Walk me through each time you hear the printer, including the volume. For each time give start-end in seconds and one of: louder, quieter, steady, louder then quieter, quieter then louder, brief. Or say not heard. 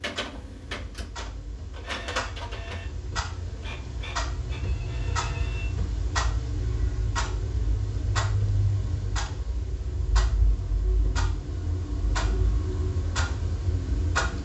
0.0-5.7 louder then quieter.